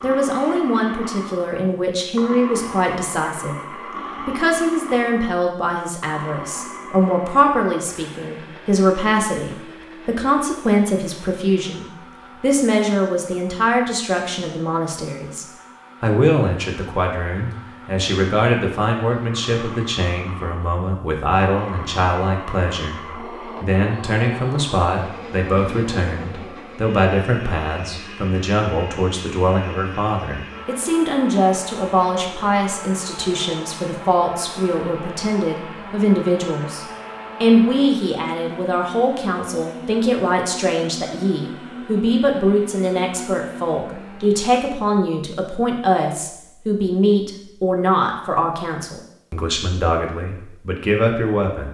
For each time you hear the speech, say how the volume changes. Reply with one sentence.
You can hear the speech from 0.0 to 51.6 s, at a steady volume.